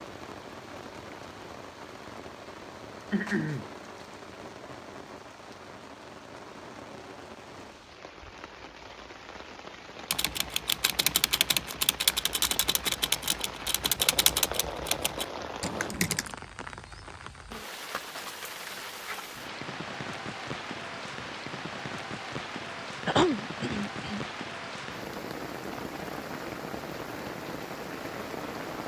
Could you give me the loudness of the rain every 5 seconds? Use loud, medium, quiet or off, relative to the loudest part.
medium, medium, loud, loud, loud, loud.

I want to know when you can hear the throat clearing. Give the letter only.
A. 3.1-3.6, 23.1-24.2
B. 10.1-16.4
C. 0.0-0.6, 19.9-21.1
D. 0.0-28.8
A.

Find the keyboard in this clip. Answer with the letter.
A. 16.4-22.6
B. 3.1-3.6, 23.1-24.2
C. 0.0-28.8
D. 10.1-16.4
D.